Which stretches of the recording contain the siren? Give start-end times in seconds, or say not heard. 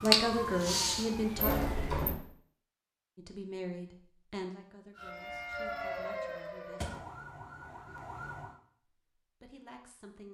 0.0-2.0, 5.0-8.6.